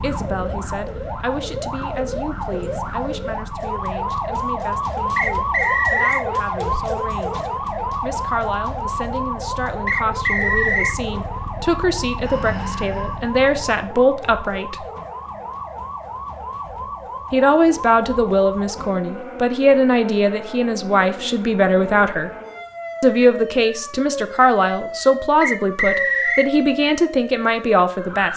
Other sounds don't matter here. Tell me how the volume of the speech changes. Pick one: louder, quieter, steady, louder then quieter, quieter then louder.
louder.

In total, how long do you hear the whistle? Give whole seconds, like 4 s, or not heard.
3 s.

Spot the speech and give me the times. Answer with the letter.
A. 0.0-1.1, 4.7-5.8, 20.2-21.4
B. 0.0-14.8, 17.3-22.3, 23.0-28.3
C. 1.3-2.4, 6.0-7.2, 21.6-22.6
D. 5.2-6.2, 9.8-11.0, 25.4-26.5
B.